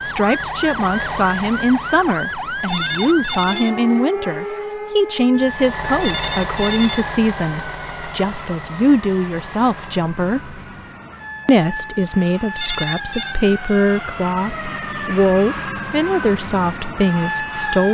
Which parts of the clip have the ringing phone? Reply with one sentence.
The ringing phone can be heard from 2.6 to 3.7 s, from 6.0 to 7.0 s and from 12.6 to 13.3 s.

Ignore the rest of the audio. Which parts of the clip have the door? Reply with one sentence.
You can't hear the door here.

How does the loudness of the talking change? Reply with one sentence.
The volume of the talking stays about the same.